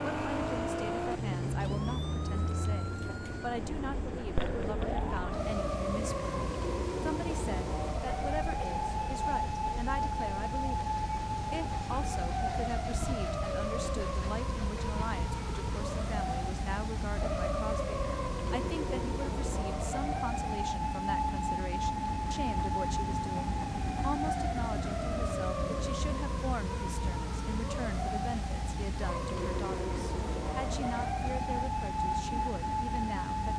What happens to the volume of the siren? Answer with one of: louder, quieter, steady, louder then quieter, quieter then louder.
steady.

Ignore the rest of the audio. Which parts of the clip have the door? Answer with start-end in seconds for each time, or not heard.
not heard.